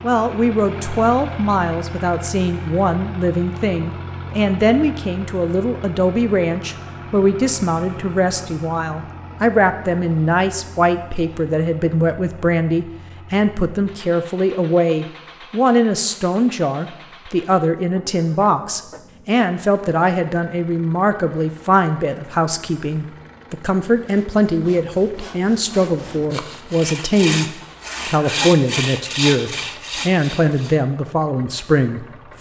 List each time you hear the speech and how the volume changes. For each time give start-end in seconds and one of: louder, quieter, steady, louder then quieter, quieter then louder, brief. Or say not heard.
0.0-32.3 steady.